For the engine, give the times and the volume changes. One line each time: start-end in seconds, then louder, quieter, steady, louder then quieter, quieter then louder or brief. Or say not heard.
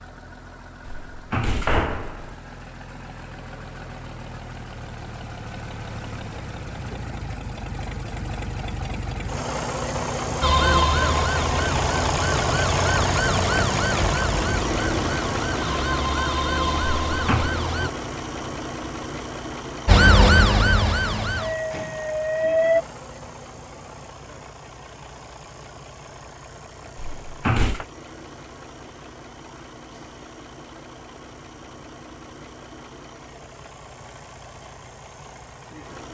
0.0-36.0 louder then quieter.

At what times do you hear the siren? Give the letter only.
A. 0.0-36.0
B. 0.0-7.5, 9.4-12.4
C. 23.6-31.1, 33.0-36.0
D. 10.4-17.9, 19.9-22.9
D.